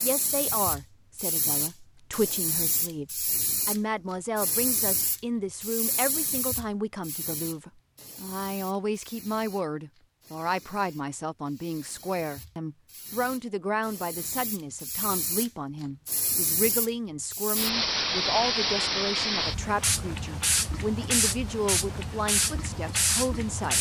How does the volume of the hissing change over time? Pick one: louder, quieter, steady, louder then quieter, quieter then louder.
quieter then louder.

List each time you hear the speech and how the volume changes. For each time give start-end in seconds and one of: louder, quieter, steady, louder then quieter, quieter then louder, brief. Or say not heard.
0.0-23.7 steady.